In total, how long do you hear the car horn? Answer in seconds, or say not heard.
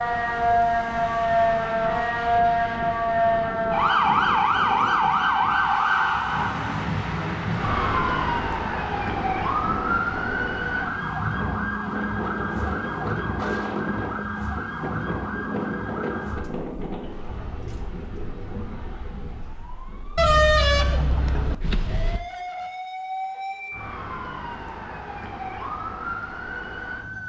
2 s.